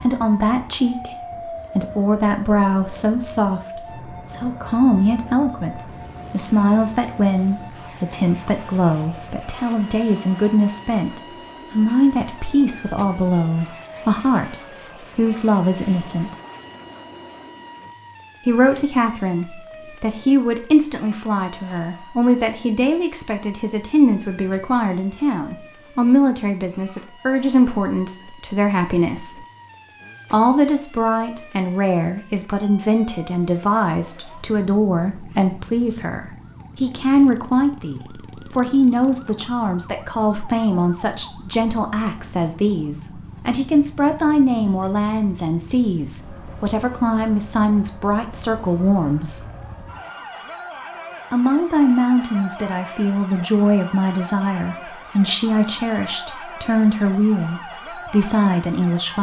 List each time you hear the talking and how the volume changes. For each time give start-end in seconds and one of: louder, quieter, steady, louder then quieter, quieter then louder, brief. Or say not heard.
0.0-1.1 brief
1.8-14.6 steady
15.2-16.3 brief
18.4-29.4 steady
30.3-49.4 steady
51.3-59.1 steady.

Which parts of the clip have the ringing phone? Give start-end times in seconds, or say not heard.
not heard.